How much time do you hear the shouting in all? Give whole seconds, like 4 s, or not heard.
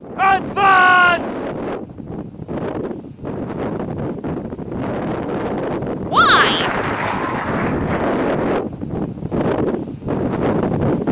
2 s.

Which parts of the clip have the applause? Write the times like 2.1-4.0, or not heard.
6.3-8.6.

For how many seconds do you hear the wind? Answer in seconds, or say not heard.
11 s.